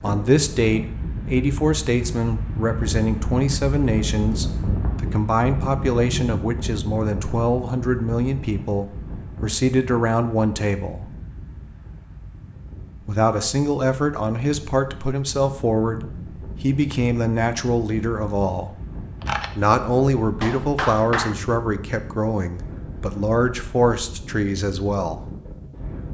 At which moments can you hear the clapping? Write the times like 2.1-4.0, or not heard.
20.4-21.4.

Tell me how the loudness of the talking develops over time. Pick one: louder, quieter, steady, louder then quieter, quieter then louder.
steady.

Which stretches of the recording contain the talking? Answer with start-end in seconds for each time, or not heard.
0.0-11.1, 13.1-18.8, 19.6-25.2.